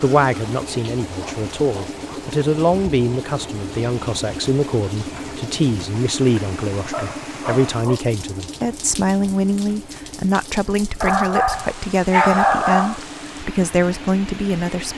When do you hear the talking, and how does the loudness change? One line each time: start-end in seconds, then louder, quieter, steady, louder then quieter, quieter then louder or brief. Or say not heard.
0.0-14.9 steady.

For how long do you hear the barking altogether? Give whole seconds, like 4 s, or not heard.
5 s.